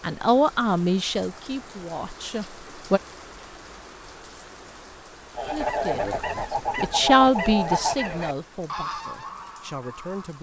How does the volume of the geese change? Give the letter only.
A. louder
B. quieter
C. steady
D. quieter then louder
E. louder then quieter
B.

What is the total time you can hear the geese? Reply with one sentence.
You can hear the geese for 5 seconds altogether.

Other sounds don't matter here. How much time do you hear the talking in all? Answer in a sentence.
You can hear the talking for 8 seconds altogether.